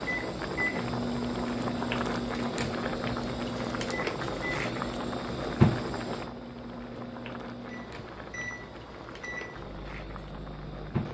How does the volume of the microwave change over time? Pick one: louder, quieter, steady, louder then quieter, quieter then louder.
quieter.